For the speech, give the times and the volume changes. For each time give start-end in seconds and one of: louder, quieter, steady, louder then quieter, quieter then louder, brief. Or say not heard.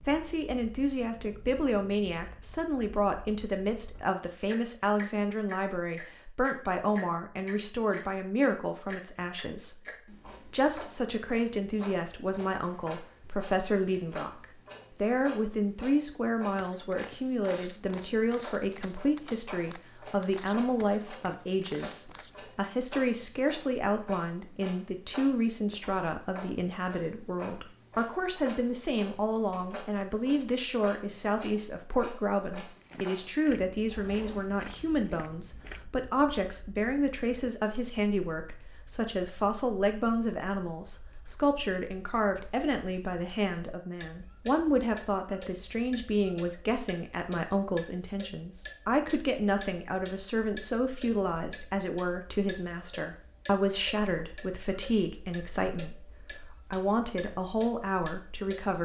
0.0-58.8 steady.